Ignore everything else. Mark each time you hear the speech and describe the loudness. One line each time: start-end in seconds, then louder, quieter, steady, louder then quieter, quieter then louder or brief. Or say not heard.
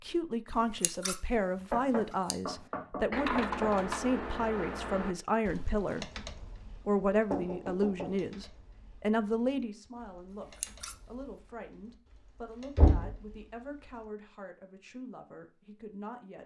0.0-6.2 steady
6.8-16.4 quieter.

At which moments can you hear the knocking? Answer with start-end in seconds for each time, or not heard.
1.7-3.7, 7.3-8.3, 12.8-13.2.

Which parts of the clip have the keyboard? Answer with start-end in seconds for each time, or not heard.
2.5-14.1.